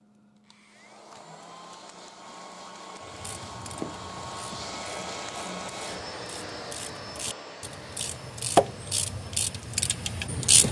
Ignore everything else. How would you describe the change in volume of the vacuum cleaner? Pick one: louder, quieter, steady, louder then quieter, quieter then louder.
louder then quieter.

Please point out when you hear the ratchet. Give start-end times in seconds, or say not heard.
3.1-10.6.